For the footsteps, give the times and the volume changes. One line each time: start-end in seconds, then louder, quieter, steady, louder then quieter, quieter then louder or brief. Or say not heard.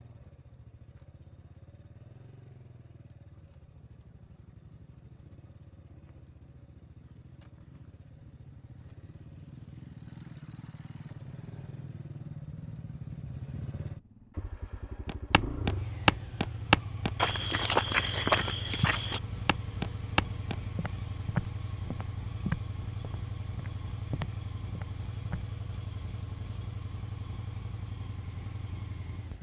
15.1-25.4 quieter.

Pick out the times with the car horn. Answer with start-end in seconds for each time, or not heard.
not heard.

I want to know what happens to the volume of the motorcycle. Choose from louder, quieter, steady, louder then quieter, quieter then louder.
louder.